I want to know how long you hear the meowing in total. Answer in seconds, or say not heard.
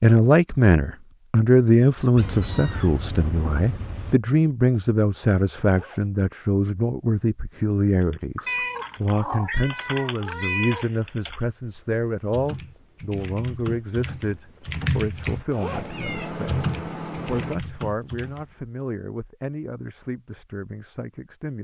6 s.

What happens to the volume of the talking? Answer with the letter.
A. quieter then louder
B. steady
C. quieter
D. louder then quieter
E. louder
C.